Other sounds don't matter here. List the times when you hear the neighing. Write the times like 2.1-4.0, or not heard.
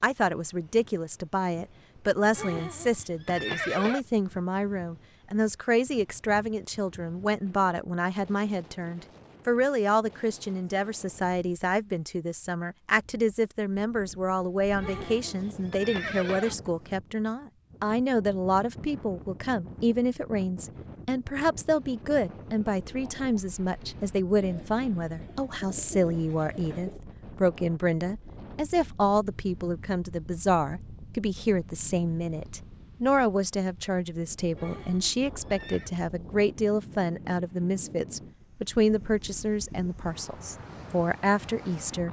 2.4-4.0, 14.8-16.6, 34.5-35.9.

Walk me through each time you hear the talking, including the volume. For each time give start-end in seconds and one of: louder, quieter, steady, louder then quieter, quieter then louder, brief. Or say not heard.
0.0-42.0 steady.